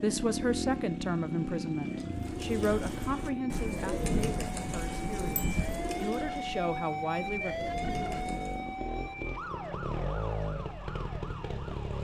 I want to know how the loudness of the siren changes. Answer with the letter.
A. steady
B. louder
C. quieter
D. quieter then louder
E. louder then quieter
E.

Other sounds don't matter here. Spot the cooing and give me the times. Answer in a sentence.
You can hear the cooing from 2.1 to 8.6 s.